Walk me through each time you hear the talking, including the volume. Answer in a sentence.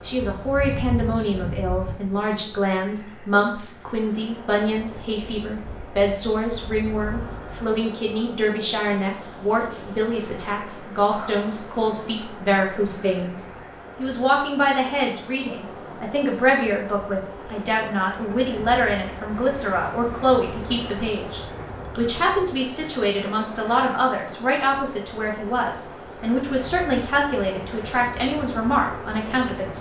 You can hear the talking from 0.0 to 29.7 s, at a steady volume.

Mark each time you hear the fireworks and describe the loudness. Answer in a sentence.
The fireworks can't be heard in this clip.